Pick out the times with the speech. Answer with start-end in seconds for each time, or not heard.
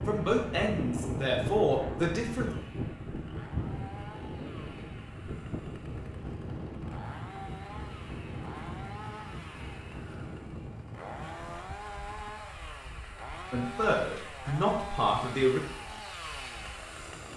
0.1-2.5, 13.5-15.6.